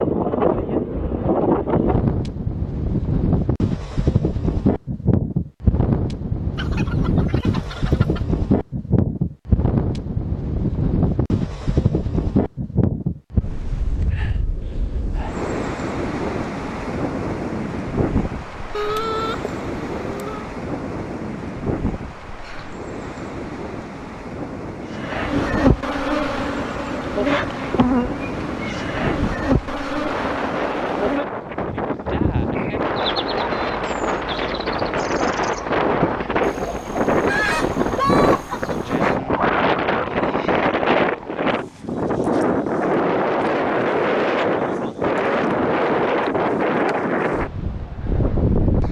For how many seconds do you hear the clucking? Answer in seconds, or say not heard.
6 s.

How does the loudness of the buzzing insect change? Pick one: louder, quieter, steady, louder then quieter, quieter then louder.
quieter.